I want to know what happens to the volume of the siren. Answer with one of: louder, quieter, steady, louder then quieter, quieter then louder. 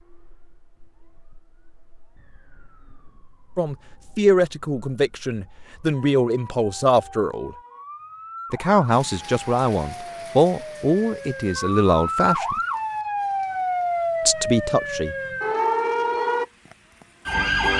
louder.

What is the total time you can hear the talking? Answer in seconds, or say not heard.
9 s.